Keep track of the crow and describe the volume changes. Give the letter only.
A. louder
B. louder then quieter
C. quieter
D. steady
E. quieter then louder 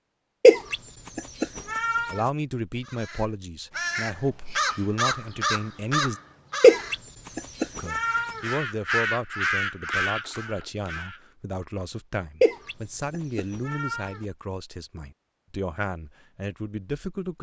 E.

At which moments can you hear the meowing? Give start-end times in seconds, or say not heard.
0.4-2.2, 6.6-8.4, 12.4-14.2.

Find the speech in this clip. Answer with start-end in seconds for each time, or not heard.
2.1-6.2, 7.8-17.3.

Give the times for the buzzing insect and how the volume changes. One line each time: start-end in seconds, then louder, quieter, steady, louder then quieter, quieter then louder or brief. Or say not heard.
not heard.